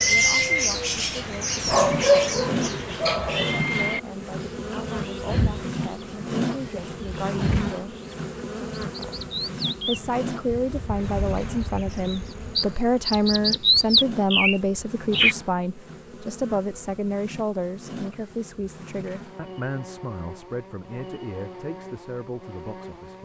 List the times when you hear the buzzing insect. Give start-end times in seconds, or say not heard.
1.6-23.1.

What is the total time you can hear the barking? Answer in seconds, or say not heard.
2 s.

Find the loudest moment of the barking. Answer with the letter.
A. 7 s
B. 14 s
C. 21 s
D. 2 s
D.